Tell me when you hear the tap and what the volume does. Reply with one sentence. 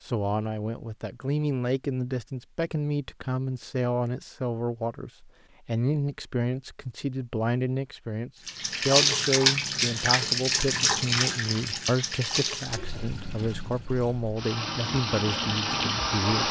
The tap can be heard from 8.4 to 16.4 s, getting quieter then louder.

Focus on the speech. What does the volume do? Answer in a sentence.
The volume of the speech stays about the same.